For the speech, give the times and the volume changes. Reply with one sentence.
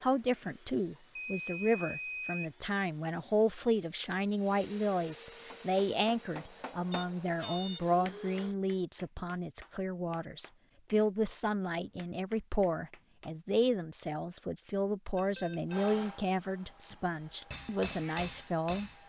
The speech can be heard from 0.0 to 18.9 s, at a steady volume.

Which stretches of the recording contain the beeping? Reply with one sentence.
The beeping can be heard from 1.1 to 2.5 s, from 6.9 to 7.8 s and from 15.2 to 15.9 s.